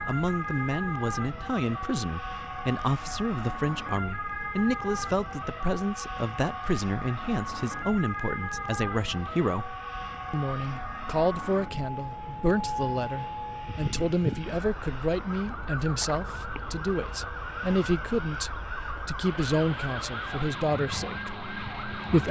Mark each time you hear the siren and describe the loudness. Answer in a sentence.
The siren can be heard from 0.0 to 22.2 s, at a steady volume.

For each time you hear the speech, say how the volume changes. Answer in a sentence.
The speech can be heard from 0.1 to 22.2 s, at a steady volume.